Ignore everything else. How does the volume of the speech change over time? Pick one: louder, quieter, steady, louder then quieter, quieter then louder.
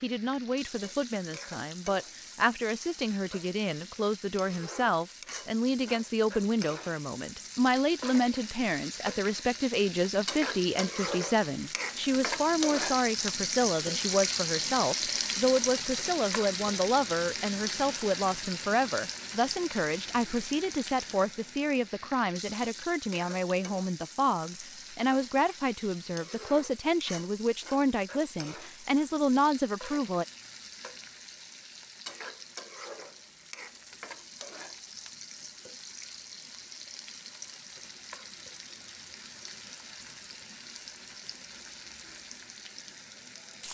steady.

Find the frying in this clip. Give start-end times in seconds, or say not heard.
0.0-43.6.